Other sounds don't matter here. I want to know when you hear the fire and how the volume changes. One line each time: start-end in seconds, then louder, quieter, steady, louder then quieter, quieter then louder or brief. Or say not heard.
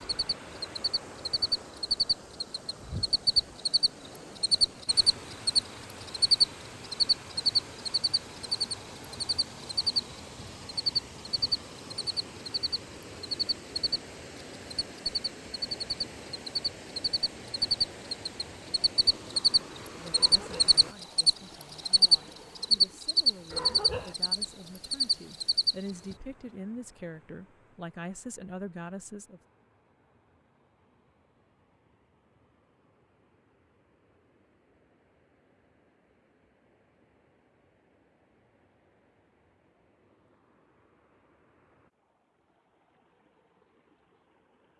not heard.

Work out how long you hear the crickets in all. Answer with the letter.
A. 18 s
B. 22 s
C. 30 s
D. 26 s
D.